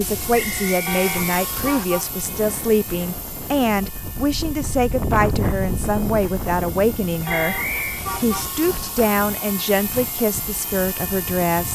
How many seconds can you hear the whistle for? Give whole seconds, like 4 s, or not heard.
2 s.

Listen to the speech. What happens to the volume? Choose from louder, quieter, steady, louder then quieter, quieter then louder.
steady.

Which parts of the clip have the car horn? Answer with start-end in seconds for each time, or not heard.
0.8-2.1, 7.2-8.6.